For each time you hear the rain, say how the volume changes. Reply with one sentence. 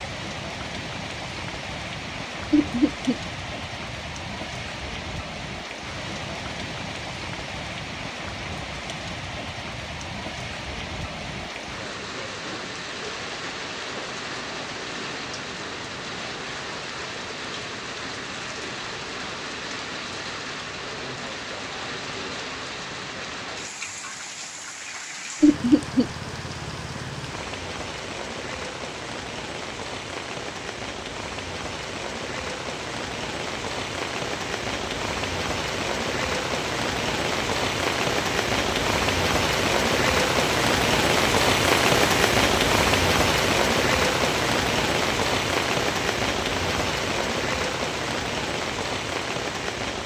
The rain can be heard from 0.0 to 50.0 s, getting louder.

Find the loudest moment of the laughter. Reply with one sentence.
The loudest moment of the laughter is at 26 seconds.